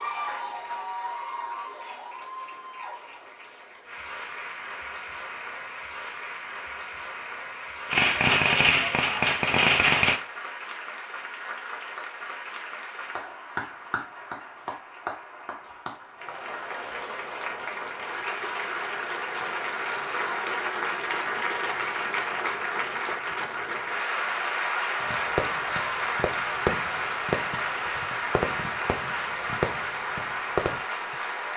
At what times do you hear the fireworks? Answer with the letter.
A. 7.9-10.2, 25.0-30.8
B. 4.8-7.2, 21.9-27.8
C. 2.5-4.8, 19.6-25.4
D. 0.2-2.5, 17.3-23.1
A.